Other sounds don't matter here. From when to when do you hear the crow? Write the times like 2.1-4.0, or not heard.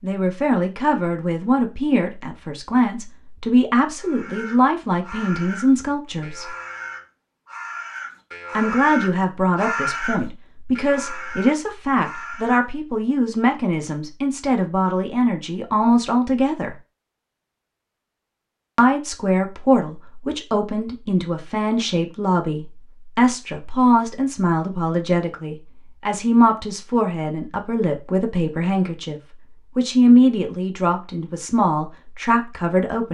4.0-12.7.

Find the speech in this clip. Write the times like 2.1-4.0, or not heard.
0.0-6.5, 8.6-16.8, 18.8-33.1.